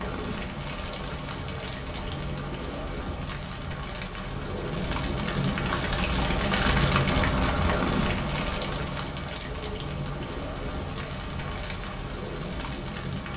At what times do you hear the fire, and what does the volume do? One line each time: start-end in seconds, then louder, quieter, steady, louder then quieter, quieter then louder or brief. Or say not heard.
0.0-13.3 louder then quieter.